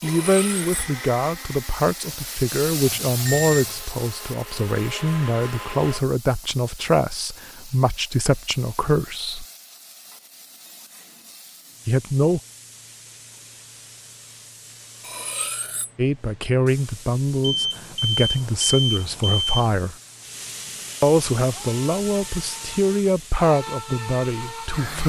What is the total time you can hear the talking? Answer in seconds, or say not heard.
18 s.